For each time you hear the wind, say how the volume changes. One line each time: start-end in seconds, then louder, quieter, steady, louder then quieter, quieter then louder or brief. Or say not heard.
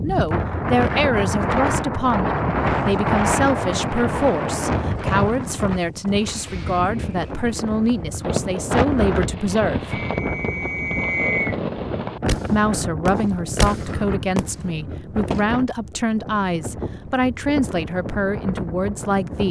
0.0-19.4 quieter.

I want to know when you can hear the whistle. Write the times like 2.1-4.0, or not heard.
9.9-11.6.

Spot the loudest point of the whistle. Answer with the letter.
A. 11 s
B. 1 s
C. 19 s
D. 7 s
A.